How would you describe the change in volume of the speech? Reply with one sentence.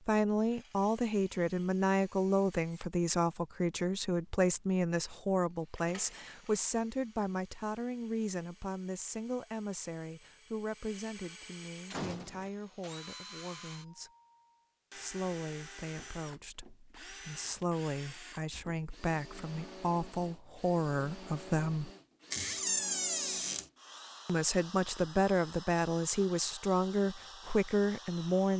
The loudness of the speech goes down, then up.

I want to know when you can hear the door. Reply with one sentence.
You can hear the door from 5.8 to 6.6 s, from 11.9 to 12.5 s and from 22.3 to 23.6 s.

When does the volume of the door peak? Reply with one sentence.
The volume of the door peaks at 23 seconds.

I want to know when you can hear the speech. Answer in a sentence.
You can hear the speech from 0.1 to 14.1 s, from 14.9 to 21.9 s and from 24.2 to 28.5 s.